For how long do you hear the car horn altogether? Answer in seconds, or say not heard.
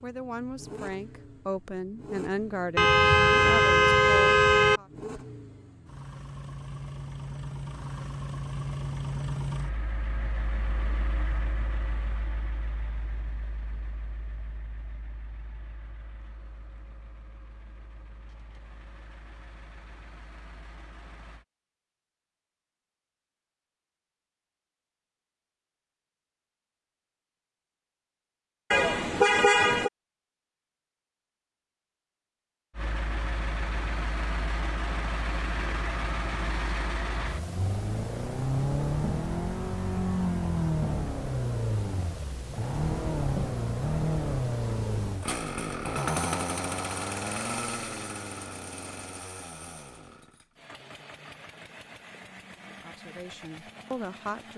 3 s.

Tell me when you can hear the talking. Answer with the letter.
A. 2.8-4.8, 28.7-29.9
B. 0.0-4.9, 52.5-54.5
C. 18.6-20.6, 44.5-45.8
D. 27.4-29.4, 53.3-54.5
B.